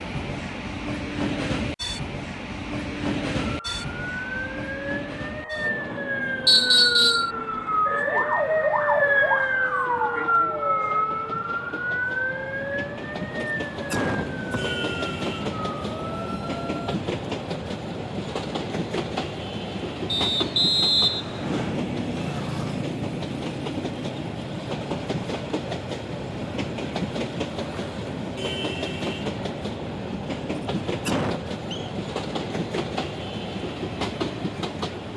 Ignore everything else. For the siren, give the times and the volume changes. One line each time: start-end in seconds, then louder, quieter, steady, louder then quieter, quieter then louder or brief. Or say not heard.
3.4-17.0 louder then quieter.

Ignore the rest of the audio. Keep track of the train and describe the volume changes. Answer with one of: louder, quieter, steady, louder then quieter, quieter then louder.
quieter then louder.